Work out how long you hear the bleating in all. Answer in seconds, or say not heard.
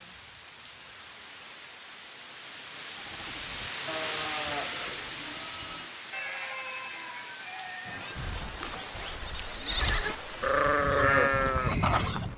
9 s.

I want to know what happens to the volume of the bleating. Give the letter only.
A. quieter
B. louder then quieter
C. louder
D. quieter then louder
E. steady
C.